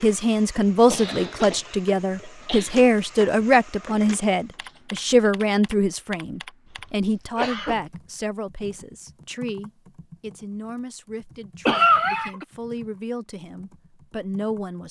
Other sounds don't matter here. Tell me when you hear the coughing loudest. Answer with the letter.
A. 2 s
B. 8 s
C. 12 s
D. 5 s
C.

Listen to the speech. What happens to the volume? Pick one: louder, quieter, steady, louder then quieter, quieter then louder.
quieter.